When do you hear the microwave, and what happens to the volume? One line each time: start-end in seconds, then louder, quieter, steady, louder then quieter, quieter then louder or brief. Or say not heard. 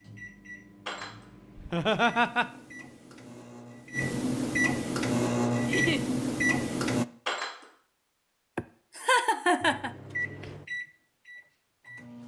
0.0-7.0 louder
9.6-12.2 brief.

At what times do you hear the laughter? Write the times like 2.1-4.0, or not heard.
1.6-2.5, 5.6-6.0, 8.6-9.9.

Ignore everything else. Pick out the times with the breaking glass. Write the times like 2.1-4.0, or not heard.
0.8-1.2, 7.2-7.7.